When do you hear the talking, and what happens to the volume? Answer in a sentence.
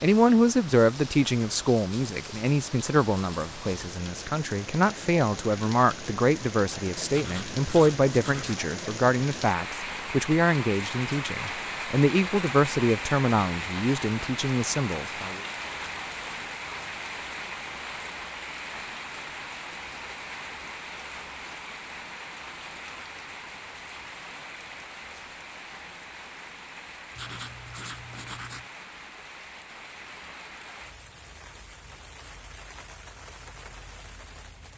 You can hear the talking from 0.0 to 15.4 s, at a steady volume.